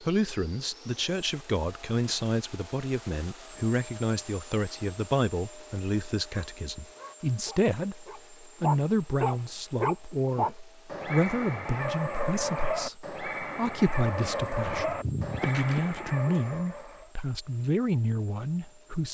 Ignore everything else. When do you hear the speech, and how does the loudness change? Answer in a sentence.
The speech can be heard from 0.0 to 19.0 s, at a steady volume.